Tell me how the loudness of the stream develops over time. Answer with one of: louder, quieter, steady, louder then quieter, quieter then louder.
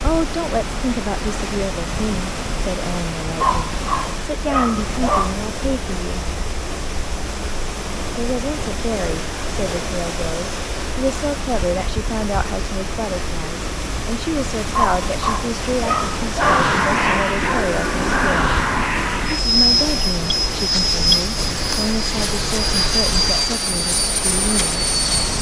steady.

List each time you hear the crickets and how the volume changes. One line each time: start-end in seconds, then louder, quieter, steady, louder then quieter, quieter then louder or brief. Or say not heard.
not heard.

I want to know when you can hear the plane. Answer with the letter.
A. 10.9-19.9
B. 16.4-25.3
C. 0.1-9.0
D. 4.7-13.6
B.